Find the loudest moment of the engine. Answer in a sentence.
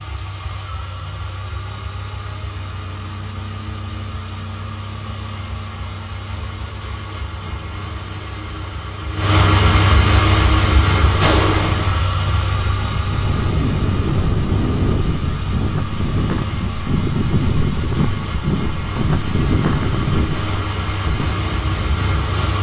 The volume of the engine peaks at 10 seconds.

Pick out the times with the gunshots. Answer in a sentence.
You can hear the gunshots from 11.2 to 11.7 s.